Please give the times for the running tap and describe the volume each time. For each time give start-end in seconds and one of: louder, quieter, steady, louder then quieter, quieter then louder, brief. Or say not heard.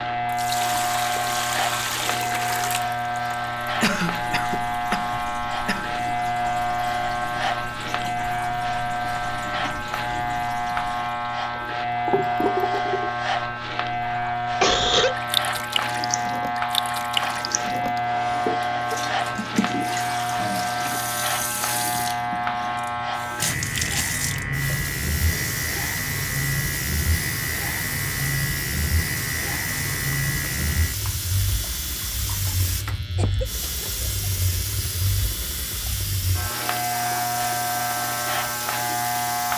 0.2-39.5 steady.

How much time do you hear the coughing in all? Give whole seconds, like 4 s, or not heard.
4 s.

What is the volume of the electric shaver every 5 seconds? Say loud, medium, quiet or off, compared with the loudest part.
loud, loud, loud, loud, loud, loud, medium, loud.